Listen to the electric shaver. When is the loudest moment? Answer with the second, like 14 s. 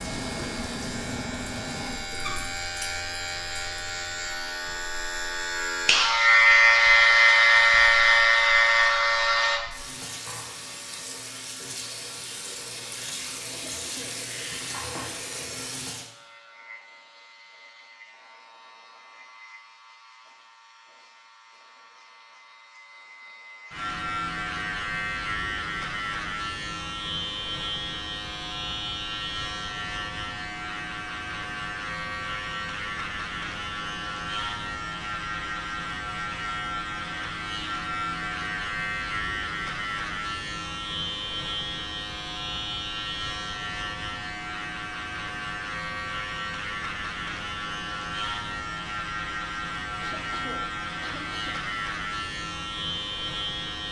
7 s.